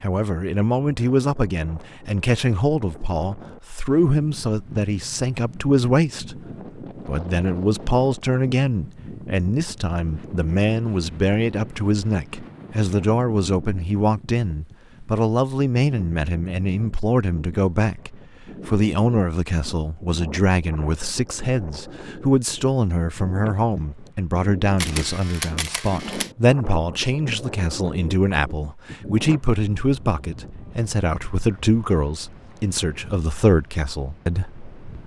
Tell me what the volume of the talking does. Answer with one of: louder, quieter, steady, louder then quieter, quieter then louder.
steady.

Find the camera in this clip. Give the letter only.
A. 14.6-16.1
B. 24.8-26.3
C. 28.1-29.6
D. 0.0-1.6
B.